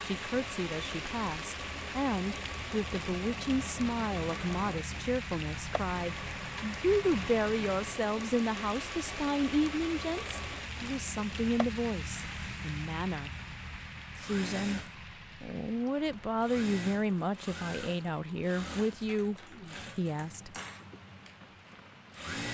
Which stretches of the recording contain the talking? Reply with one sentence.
The talking can be heard from 0.0 to 13.3 s, from 14.2 to 14.8 s and from 15.4 to 20.5 s.